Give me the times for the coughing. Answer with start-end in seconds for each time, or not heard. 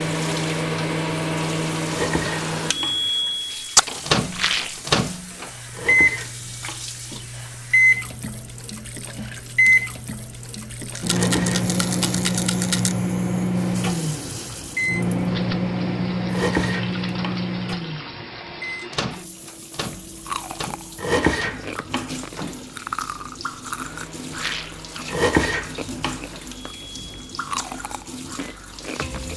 not heard.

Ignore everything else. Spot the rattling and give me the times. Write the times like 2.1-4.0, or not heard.
4.3-4.8, 10.9-12.9, 24.3-24.8.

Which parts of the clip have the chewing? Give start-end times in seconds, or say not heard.
19.9-29.3.